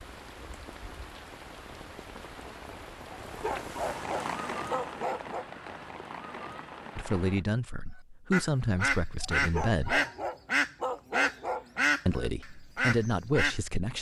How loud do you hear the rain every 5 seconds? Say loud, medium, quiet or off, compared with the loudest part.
loud, loud, off.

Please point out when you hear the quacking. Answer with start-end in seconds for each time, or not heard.
8.3-13.6.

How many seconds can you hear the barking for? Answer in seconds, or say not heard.
5 s.